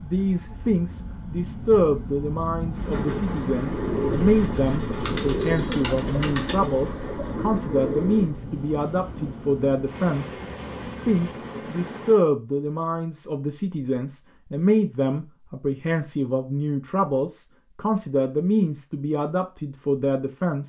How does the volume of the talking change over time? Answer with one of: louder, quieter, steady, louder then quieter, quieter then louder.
steady.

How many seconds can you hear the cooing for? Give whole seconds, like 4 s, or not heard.
6 s.